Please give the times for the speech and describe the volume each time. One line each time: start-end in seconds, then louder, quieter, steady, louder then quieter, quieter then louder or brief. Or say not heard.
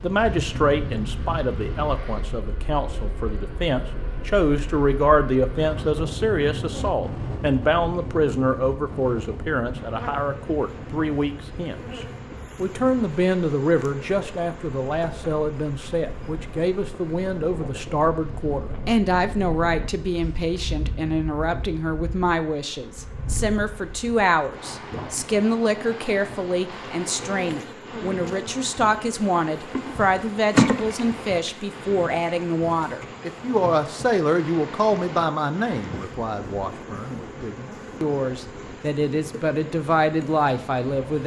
0.0-41.2 steady.